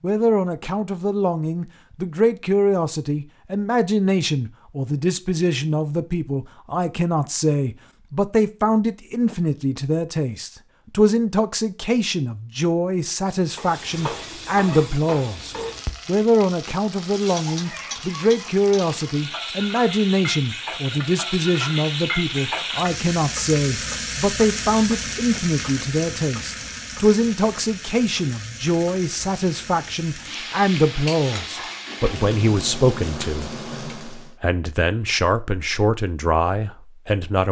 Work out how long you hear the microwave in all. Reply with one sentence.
The microwave can't be heard in this clip.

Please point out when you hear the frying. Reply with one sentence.
The frying can be heard from 13.4 to 34.4 s.